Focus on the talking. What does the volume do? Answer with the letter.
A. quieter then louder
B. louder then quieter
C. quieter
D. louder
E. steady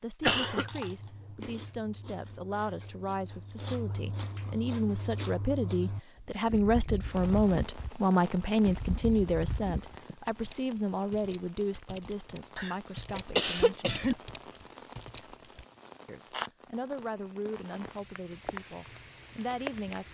B.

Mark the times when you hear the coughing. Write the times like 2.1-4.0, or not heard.
0.2-0.7, 12.6-14.2.